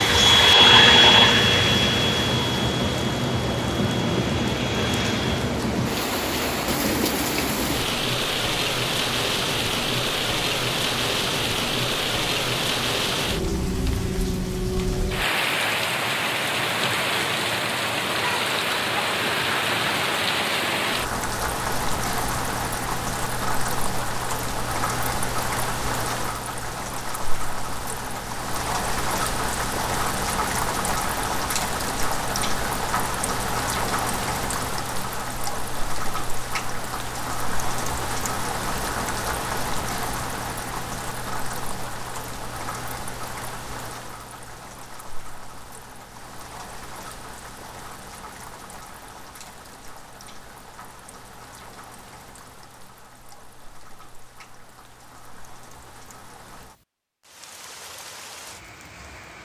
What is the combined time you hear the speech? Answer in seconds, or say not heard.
not heard.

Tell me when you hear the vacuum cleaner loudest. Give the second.
1 s.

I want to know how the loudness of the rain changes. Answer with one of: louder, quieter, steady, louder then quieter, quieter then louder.
quieter.